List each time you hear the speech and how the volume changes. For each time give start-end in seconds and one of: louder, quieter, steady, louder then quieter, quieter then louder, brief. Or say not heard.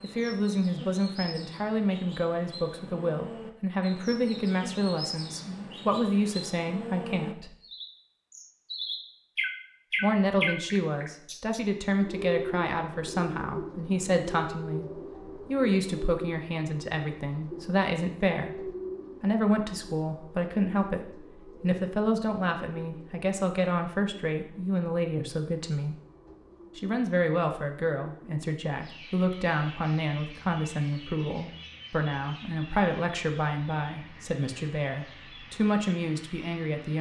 0.0-7.5 steady
10.0-25.9 steady
26.8-36.9 steady.